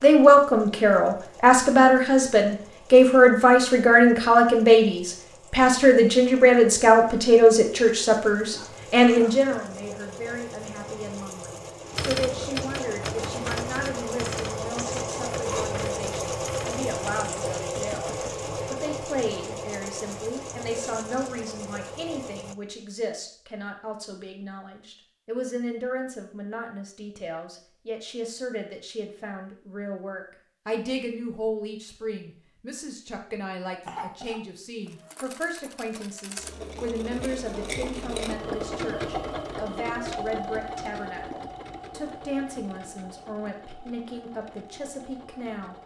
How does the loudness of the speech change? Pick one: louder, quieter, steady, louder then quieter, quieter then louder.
quieter.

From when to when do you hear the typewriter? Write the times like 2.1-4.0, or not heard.
11.9-18.5.